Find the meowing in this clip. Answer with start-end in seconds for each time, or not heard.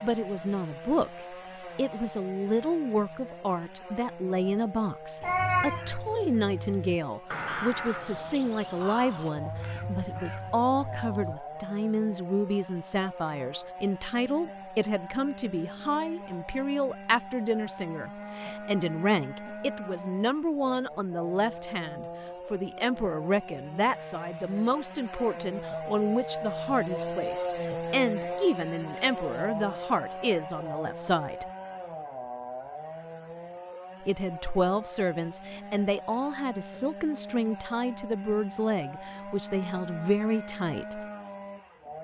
5.2-5.8.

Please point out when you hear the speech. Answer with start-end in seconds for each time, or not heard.
0.0-31.4, 34.0-41.0.